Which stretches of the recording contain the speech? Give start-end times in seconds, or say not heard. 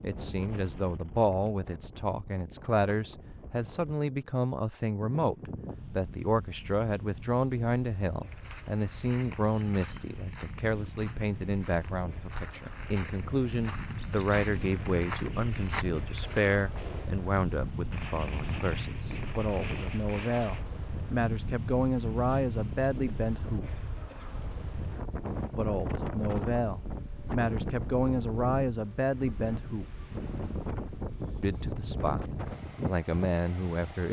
0.0-23.8, 25.6-30.0, 31.4-34.0.